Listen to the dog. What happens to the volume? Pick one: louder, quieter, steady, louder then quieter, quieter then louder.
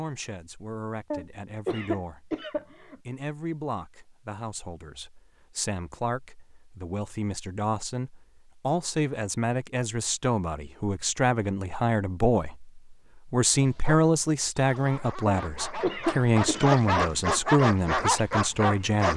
louder.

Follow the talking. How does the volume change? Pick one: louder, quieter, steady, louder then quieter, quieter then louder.
louder.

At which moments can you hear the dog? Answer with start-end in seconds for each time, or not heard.
13.6-19.1.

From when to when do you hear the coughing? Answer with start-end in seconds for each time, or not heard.
1.1-3.0, 15.2-16.8.